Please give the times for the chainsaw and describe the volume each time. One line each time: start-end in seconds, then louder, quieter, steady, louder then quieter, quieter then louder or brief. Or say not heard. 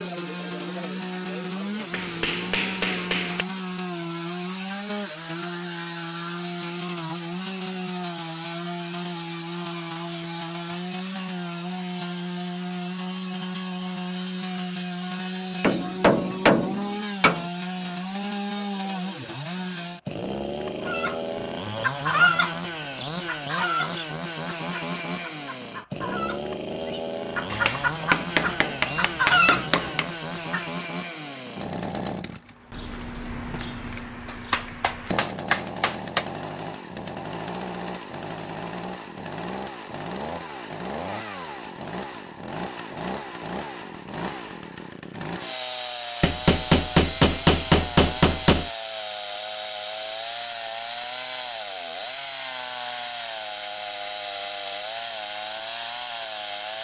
0.0-56.7 steady.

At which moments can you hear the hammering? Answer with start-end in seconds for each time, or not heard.
1.9-3.5, 15.6-17.4, 27.5-30.1, 34.5-36.2, 46.2-48.7.